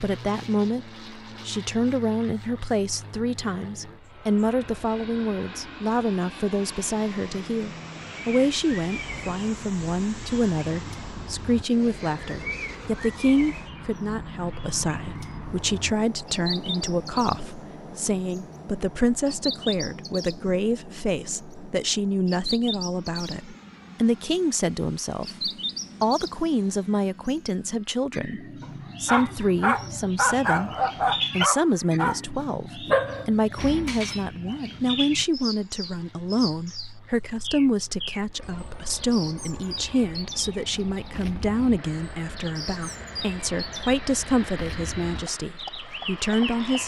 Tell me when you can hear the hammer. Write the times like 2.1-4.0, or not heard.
not heard.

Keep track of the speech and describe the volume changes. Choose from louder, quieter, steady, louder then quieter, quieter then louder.
steady.